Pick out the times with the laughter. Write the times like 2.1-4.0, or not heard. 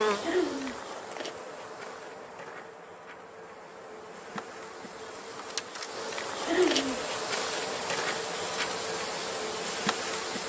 0.2-0.8, 6.5-7.0.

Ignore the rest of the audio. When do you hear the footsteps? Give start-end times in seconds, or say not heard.
not heard.